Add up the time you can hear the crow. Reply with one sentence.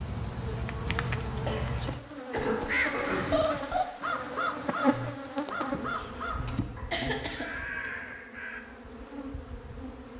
You can hear the crow for 6 seconds altogether.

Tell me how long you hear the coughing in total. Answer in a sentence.
You can hear the coughing for 4 seconds altogether.